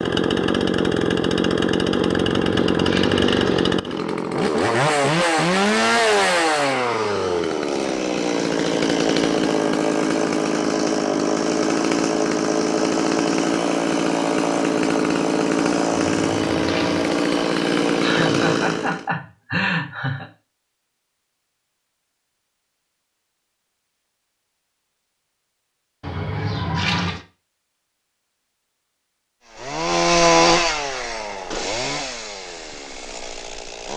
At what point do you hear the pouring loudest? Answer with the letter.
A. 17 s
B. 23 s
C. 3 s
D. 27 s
D.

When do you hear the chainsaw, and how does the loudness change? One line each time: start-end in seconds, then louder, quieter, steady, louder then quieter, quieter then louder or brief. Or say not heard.
0.0-19.1 steady
29.5-33.9 quieter.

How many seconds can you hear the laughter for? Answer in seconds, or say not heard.
2 s.